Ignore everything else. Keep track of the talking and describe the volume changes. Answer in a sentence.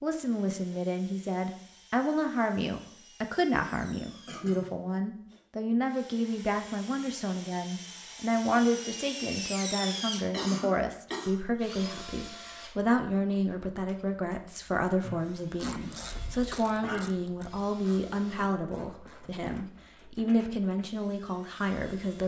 The volume of the talking stays about the same.